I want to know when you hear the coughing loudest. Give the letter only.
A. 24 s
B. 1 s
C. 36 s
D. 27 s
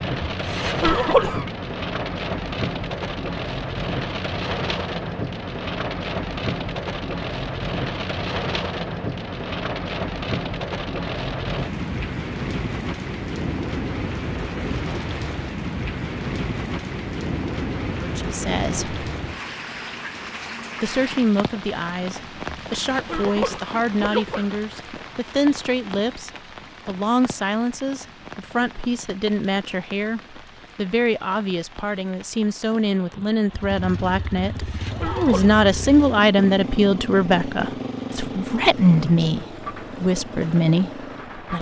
B.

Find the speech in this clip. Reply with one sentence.
You can hear the speech from 17.9 to 18.9 s and from 20.8 to 41.5 s.